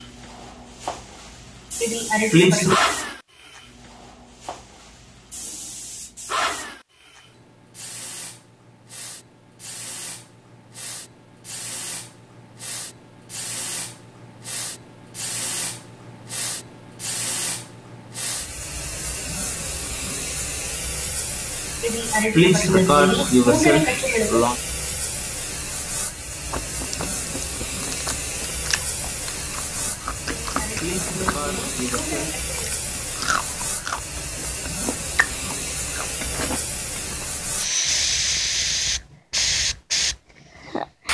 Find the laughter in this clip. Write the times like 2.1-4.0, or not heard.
1.8-2.8, 21.8-24.6, 30.2-32.8.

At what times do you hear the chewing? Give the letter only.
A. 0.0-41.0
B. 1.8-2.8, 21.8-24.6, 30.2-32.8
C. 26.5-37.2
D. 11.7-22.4
C.